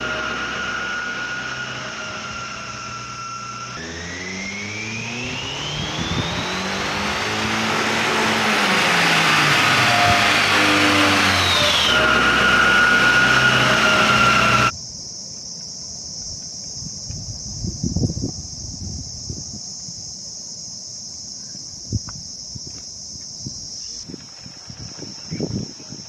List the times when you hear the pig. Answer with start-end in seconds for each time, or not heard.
not heard.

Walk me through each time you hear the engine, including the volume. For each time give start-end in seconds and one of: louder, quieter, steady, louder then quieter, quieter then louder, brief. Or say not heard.
0.0-14.7 louder.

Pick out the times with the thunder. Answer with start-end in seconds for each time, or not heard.
not heard.